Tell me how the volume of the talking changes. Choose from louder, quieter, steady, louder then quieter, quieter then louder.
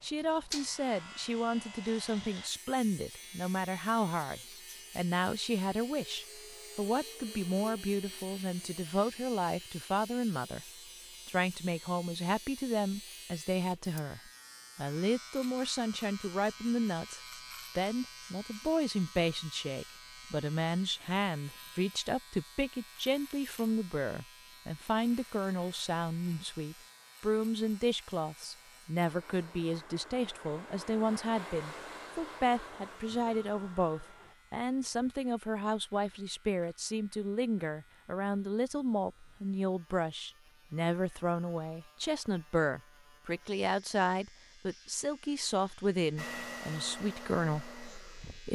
steady.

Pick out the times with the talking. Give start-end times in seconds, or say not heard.
0.0-10.7, 11.2-48.5.